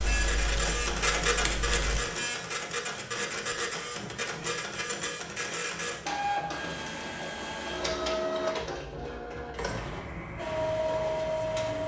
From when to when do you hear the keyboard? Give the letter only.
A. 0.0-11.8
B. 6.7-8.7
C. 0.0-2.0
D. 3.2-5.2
C.